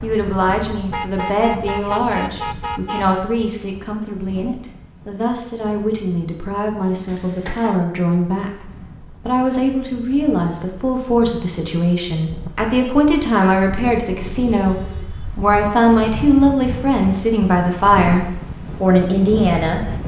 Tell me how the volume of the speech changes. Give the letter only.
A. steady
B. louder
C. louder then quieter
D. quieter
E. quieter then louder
B.